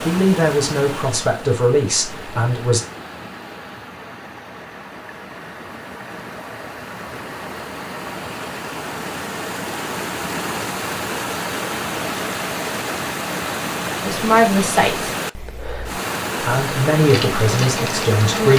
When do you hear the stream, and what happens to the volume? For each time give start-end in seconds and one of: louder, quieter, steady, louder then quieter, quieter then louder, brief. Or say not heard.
0.0-18.5 louder.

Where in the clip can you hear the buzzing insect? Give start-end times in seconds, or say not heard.
17.0-18.5.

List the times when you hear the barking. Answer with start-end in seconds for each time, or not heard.
not heard.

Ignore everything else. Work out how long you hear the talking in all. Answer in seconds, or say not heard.
6 s.